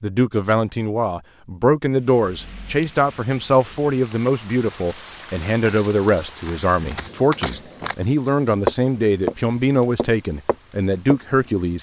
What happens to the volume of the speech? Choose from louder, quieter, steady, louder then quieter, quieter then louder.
steady.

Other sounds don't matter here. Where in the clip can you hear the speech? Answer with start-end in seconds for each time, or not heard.
0.0-11.7.